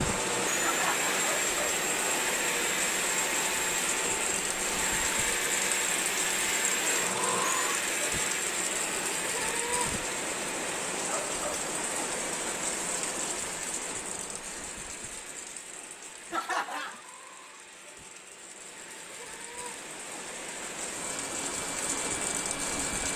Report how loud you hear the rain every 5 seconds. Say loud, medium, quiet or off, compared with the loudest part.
loud, loud, loud, quiet, loud.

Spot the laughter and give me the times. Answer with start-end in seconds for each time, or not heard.
0.6-1.1, 16.3-17.0.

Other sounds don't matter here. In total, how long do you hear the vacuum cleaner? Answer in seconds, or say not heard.
23 s.